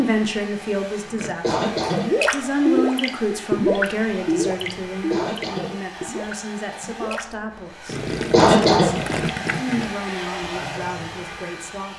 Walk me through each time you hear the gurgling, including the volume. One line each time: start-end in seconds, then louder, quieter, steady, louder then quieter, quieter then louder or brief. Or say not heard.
1.1-9.9 quieter then louder.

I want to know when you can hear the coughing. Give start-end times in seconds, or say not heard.
1.2-2.1, 4.9-5.8, 8.2-8.9.